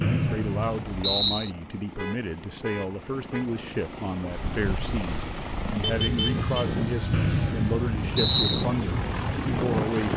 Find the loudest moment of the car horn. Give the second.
6 s.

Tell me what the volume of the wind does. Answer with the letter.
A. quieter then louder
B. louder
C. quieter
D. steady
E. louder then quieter
B.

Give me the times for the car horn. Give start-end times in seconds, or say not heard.
1.9-3.5, 5.8-6.5.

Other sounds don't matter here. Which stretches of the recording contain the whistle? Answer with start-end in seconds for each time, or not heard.
0.0-1.5, 7.1-8.7.